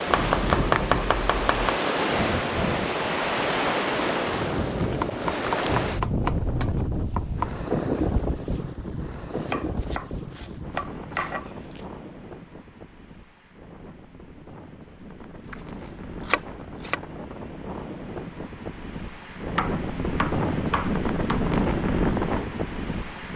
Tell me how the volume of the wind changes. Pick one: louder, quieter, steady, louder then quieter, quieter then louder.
quieter then louder.